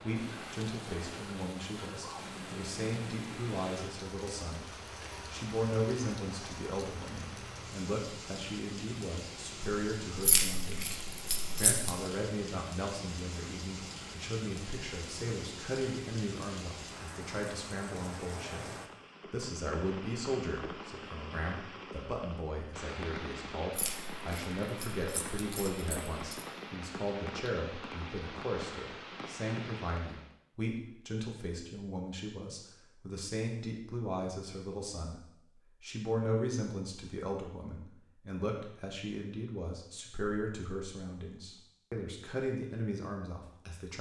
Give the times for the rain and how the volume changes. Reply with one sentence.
The rain can be heard from 0.0 to 30.4 s, at a steady volume.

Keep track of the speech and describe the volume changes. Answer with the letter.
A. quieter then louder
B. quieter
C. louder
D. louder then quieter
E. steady
E.